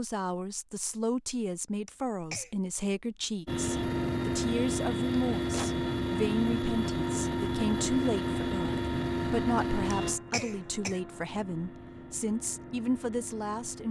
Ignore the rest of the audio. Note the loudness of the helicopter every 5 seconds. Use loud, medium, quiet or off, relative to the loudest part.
loud, loud, quiet.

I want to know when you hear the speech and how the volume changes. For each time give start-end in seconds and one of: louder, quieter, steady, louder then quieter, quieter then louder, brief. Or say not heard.
0.0-13.8 steady.